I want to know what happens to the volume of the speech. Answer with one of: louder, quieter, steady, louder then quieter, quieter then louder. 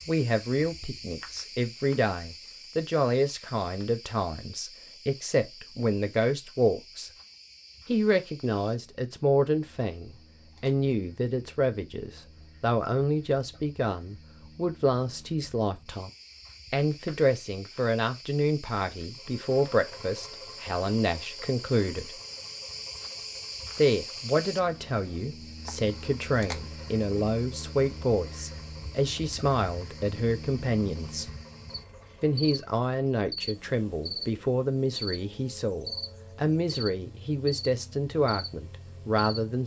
steady.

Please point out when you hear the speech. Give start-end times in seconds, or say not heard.
0.1-7.1, 7.8-16.1, 16.7-22.2, 23.8-31.3, 32.2-39.6.